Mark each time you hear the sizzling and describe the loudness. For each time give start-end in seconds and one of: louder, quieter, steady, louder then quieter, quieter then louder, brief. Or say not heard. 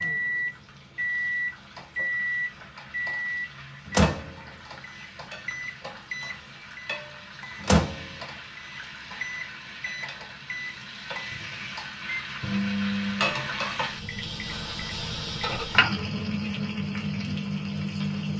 0.0-18.3 louder.